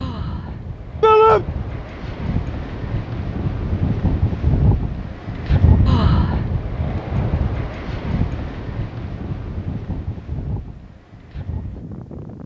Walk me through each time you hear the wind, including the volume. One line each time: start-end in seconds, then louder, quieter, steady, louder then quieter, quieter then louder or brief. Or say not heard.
0.0-12.4 louder then quieter.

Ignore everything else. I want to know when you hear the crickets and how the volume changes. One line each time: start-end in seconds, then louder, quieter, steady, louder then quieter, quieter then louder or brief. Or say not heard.
not heard.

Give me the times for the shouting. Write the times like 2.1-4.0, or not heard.
1.0-1.4.